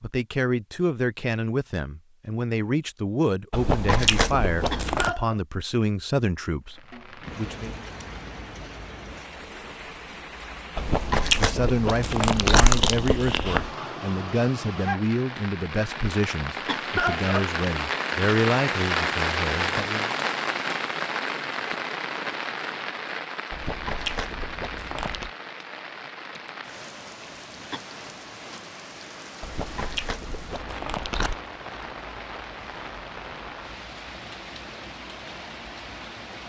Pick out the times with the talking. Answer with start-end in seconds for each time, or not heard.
0.0-7.8, 11.3-20.1.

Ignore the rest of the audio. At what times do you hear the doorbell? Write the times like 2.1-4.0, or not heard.
not heard.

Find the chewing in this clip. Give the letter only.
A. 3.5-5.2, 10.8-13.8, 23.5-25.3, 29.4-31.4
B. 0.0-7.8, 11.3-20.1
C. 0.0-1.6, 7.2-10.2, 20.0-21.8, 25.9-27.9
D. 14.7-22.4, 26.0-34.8
A.